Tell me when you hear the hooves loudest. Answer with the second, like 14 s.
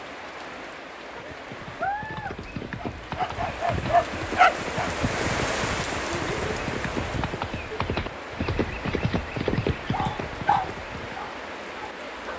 10 s.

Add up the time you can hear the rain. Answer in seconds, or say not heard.
12 s.